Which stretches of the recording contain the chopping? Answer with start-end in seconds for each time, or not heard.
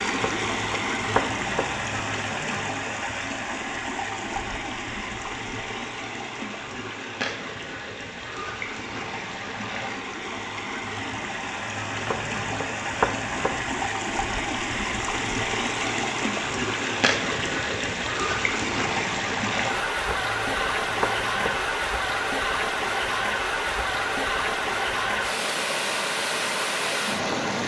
0.1-1.9, 12.1-13.9, 20.1-21.7.